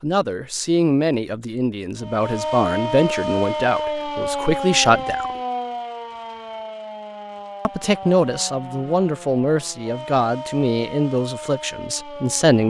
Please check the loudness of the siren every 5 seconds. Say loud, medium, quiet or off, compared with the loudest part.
loud, medium, medium.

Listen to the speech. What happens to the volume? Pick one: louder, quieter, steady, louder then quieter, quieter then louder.
steady.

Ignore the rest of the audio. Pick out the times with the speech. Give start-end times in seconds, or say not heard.
0.0-5.3, 7.7-12.6.